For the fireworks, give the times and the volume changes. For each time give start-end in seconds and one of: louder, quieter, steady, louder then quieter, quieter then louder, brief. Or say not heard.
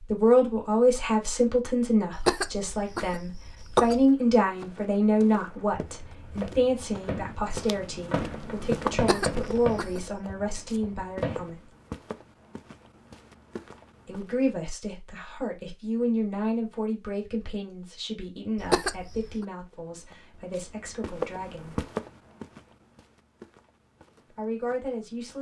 5.4-11.5 louder then quieter.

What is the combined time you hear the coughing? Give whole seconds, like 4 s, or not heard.
4 s.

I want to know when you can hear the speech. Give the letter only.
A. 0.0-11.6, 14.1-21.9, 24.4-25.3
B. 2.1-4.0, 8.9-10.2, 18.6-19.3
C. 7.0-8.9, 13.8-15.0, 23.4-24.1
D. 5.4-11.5
A.